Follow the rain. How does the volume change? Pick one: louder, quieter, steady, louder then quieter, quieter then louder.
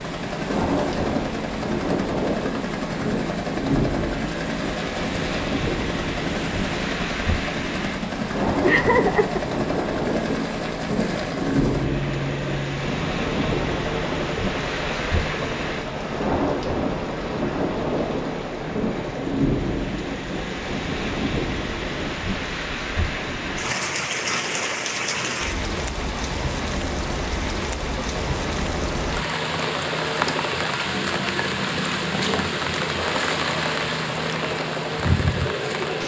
steady.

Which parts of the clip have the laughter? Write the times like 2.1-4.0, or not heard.
8.2-9.6.